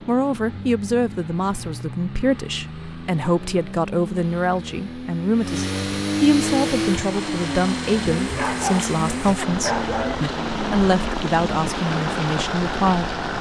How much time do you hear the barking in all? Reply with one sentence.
The barking can be heard for 2 seconds in total.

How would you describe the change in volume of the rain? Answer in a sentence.
The loudness of the rain goes up.